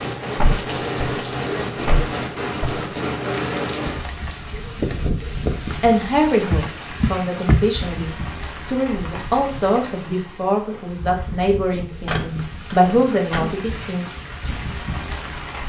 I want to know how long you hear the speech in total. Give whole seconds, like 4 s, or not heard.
8 s.